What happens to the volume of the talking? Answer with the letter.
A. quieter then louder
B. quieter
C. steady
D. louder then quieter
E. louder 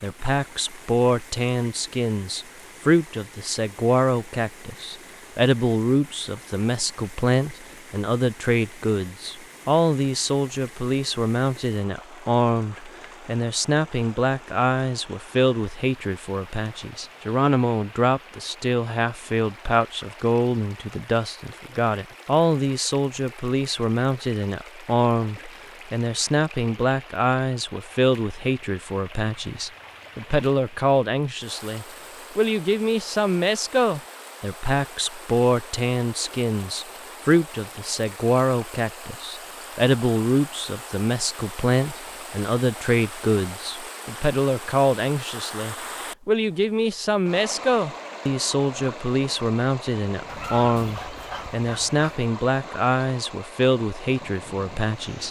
C.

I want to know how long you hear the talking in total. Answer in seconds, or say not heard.
55 s.